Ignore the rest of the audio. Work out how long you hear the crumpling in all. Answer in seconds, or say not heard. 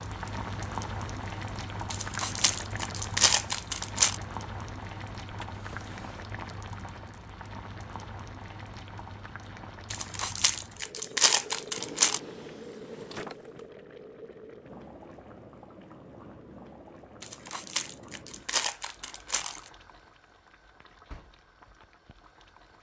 7 s.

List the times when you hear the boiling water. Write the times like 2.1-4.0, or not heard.
0.0-22.7.